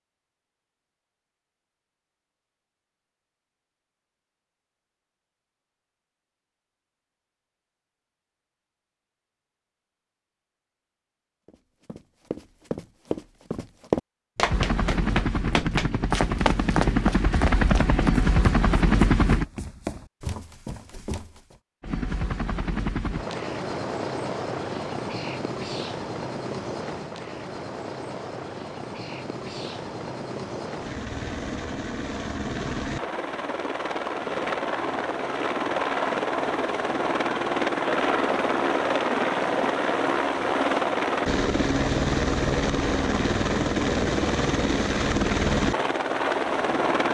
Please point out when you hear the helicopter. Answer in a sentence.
The helicopter can be heard from 14.4 to 19.4 s and from 21.8 to 47.0 s.